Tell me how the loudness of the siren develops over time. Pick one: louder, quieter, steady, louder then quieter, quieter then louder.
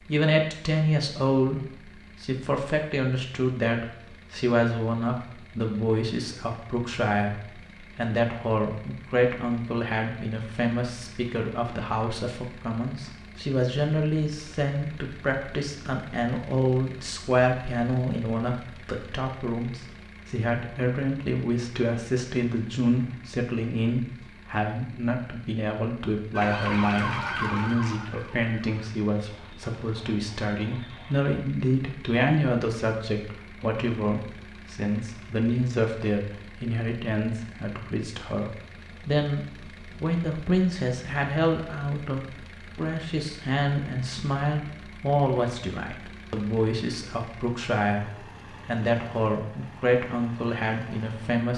quieter.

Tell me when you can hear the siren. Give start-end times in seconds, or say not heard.
26.3-31.4.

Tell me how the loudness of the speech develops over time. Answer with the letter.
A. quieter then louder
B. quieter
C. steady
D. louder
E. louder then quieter
C.